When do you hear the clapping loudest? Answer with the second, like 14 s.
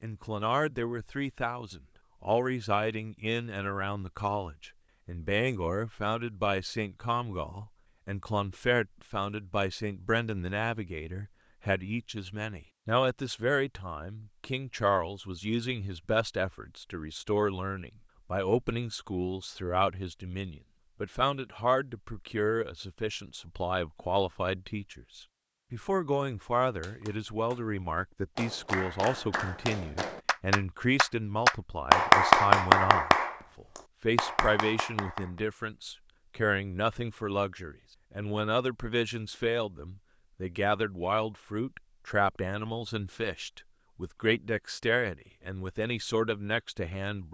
32 s.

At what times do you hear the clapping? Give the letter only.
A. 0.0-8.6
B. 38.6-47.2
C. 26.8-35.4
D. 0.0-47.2
C.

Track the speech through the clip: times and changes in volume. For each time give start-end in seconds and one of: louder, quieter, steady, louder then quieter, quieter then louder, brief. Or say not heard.
0.0-47.2 steady.